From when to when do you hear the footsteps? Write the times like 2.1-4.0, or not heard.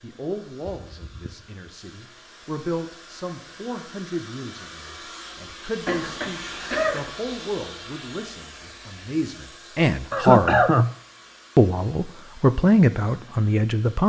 not heard.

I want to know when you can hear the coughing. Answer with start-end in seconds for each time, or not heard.
0.7-1.4, 5.8-7.1, 10.1-10.9.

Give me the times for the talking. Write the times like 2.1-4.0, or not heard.
0.0-10.6, 11.6-14.0.